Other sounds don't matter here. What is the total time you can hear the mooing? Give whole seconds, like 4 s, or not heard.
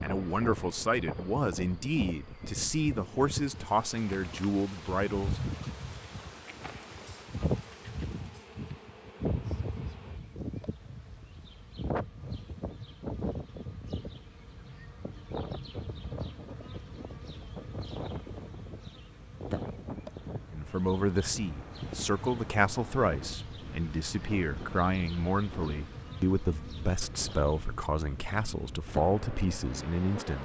not heard.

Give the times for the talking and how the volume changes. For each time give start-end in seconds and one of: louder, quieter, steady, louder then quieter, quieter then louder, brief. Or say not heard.
0.0-5.5 steady
20.5-30.3 steady.